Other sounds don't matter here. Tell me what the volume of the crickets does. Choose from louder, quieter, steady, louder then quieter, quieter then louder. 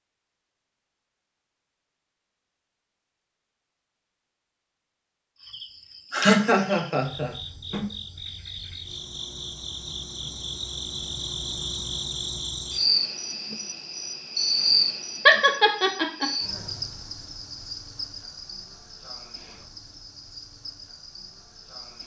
louder then quieter.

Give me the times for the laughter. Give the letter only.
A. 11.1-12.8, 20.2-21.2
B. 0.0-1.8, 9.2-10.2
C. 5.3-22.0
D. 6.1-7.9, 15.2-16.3
D.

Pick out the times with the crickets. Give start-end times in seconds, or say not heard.
5.3-22.0.